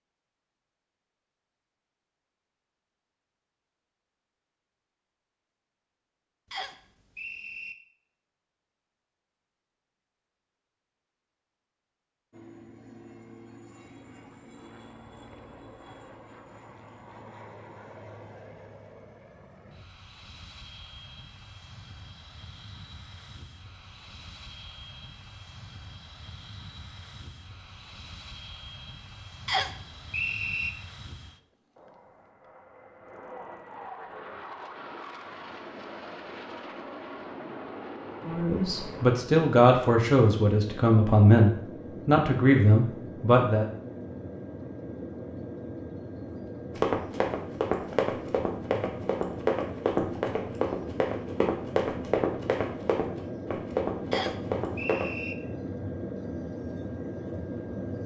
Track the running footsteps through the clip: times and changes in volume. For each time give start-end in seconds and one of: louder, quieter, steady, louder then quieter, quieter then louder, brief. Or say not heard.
46.8-55.1 steady.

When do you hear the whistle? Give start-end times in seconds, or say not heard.
6.5-7.8, 29.4-30.7, 54.1-55.4.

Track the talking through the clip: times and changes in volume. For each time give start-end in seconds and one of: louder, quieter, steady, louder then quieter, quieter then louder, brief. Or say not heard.
38.2-43.6 steady.